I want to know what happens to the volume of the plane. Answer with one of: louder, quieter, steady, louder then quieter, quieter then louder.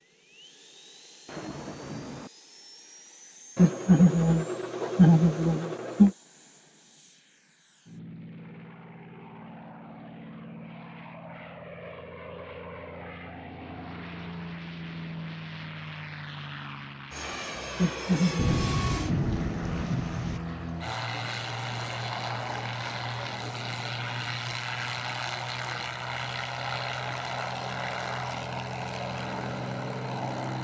louder.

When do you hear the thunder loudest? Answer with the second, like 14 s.
19 s.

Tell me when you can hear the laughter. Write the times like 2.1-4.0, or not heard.
3.5-6.1, 17.8-18.8.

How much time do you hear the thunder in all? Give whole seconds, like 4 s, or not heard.
3 s.